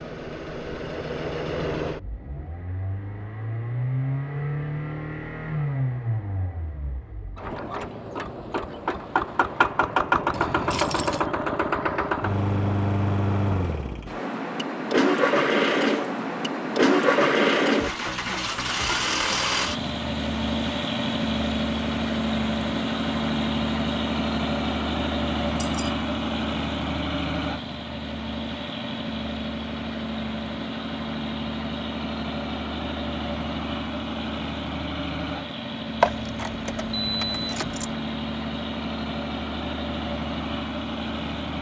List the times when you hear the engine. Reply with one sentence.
You can hear the engine from 0.0 to 41.5 s.